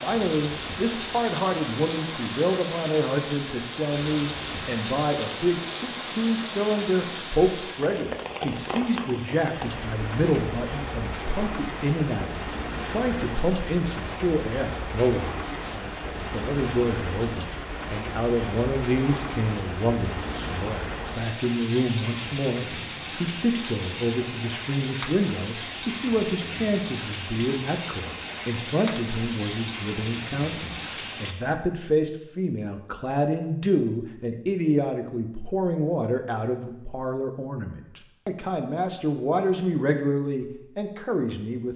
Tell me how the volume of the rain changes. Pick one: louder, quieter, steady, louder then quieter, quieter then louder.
steady.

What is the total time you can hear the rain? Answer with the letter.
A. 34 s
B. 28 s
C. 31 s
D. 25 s
C.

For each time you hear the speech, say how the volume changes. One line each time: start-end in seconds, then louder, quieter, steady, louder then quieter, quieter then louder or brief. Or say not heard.
0.0-41.7 steady.